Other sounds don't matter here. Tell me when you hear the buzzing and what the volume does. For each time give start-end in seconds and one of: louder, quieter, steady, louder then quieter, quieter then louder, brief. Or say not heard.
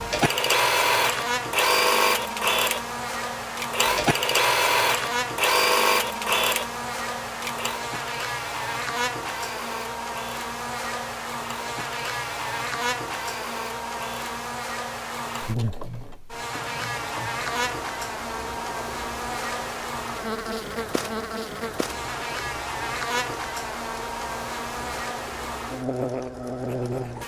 0.0-27.2 steady.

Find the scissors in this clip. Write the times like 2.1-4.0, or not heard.
not heard.